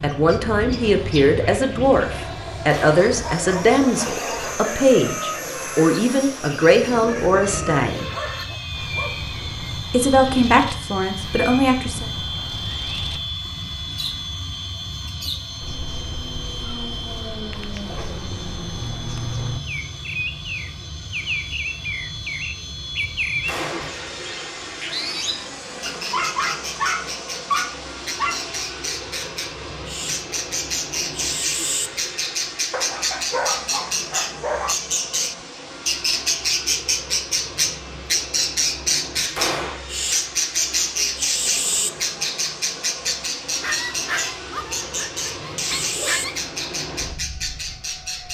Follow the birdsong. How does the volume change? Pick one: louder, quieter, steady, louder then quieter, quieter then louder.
louder.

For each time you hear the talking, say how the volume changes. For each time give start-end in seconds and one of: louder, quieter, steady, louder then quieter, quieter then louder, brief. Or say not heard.
0.0-8.1 steady
9.9-12.1 brief.